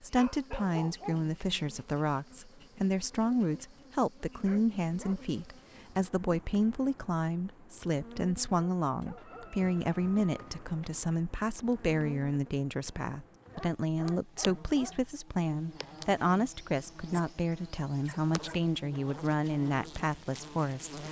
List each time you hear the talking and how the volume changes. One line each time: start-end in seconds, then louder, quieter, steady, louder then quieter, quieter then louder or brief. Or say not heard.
0.0-21.0 steady.